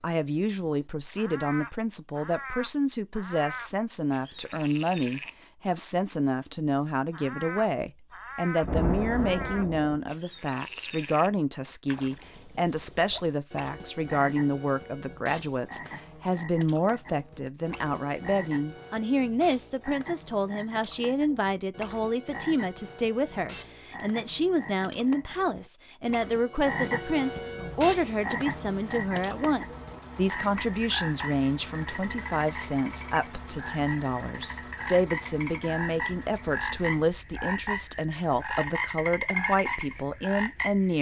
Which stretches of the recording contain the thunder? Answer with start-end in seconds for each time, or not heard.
8.6-9.9.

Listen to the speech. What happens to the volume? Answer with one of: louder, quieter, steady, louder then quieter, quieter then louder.
steady.